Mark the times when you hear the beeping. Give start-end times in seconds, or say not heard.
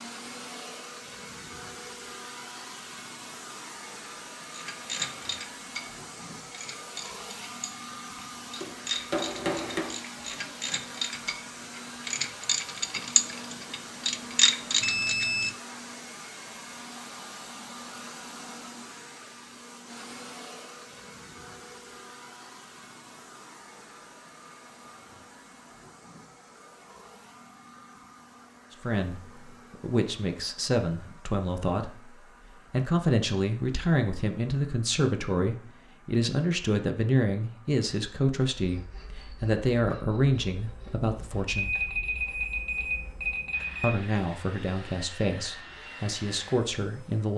14.8-15.6, 41.5-44.0.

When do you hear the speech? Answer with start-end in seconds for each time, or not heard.
28.8-32.1, 32.7-41.8, 43.8-47.3.